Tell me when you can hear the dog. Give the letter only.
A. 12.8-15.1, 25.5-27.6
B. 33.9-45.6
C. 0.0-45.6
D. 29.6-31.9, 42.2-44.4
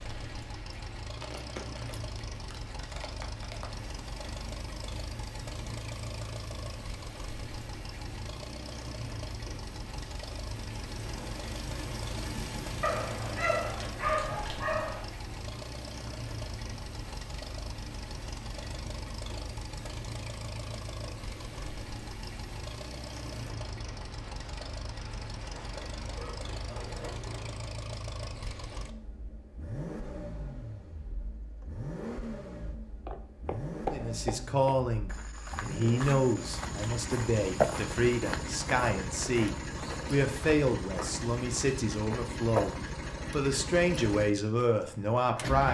A.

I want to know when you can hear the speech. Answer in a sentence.
The speech can be heard from 33.9 to 45.6 s.